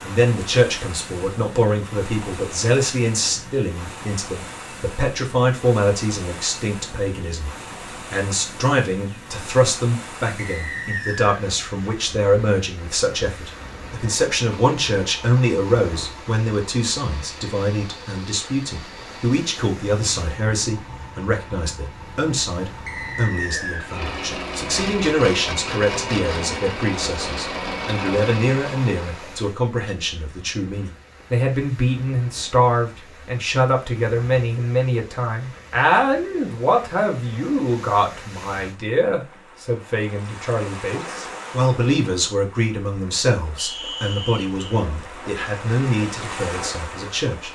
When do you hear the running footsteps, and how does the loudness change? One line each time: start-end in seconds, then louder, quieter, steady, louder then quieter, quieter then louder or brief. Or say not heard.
not heard.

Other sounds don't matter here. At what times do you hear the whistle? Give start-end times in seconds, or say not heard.
10.3-11.4, 22.9-23.9, 43.5-44.5.